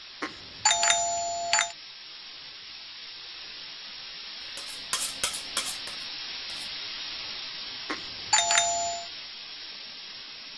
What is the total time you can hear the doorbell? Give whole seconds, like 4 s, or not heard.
3 s.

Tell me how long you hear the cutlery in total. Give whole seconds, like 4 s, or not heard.
2 s.